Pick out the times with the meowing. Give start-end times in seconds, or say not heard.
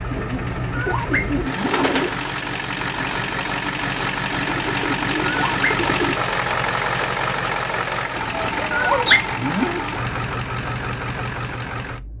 0.7-1.8, 5.2-5.7, 8.7-9.8.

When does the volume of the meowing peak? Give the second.
9 s.